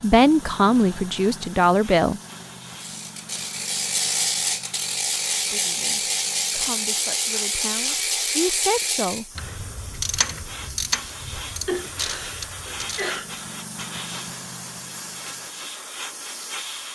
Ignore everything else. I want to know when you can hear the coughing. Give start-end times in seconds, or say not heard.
11.7-13.2.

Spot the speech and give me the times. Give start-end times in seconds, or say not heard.
0.0-2.2, 5.5-9.2.